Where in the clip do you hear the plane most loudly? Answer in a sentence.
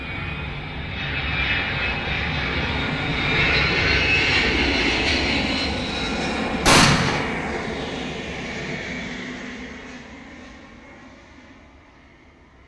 The loudest moment of the plane is at 4 seconds.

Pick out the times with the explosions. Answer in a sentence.
The explosions can be heard from 6.7 to 7.2 s.